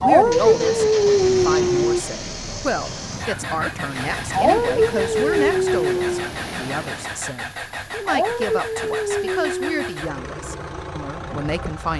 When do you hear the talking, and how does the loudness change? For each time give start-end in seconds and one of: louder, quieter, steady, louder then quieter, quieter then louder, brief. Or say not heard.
0.0-11.9 steady.